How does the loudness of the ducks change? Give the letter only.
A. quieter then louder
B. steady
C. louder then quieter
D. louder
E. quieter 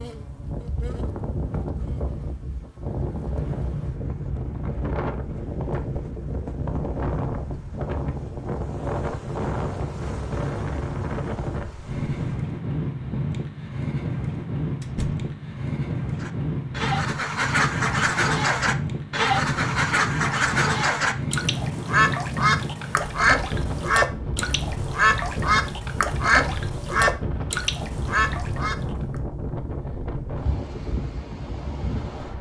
B.